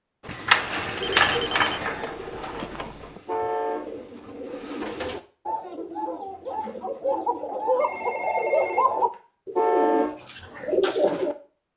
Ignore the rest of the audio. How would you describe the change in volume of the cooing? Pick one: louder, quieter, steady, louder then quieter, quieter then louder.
quieter then louder.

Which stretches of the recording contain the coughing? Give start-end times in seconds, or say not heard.
not heard.